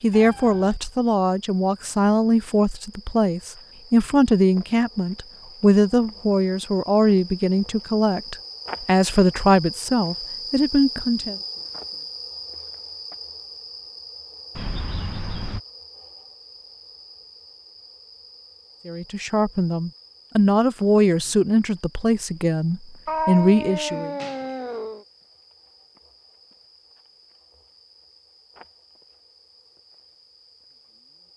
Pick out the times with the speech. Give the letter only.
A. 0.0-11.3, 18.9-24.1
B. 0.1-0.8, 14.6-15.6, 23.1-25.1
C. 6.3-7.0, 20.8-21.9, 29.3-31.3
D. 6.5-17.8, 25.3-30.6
A.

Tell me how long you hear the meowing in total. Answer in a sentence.
The meowing can be heard for 4 seconds in total.